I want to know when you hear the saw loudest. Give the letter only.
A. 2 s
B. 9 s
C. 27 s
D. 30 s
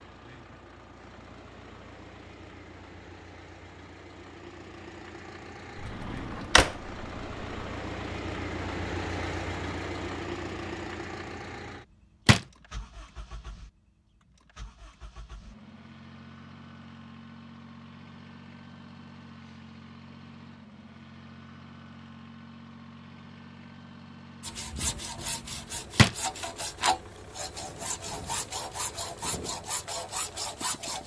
C.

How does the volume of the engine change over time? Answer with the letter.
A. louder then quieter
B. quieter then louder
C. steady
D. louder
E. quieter
A.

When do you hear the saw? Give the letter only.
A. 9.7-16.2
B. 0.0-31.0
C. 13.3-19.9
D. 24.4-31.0
D.